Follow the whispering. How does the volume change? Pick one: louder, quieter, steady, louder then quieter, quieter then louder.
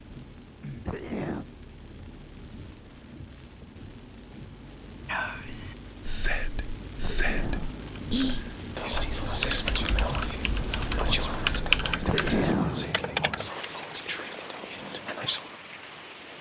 quieter.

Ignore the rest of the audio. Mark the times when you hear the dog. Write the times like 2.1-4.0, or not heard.
not heard.